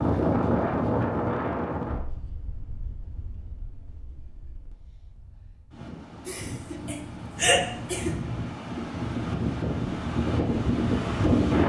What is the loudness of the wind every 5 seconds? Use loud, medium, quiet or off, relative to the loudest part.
medium, medium, loud.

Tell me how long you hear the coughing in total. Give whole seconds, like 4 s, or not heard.
2 s.